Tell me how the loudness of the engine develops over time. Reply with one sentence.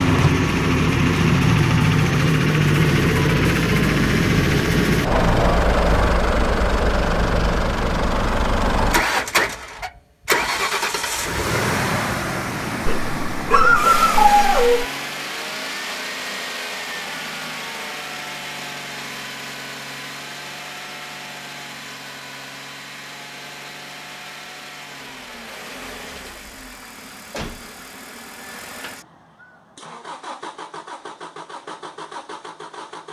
The volume of the engine goes down.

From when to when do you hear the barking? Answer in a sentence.
You can hear the barking from 12.8 to 14.8 s.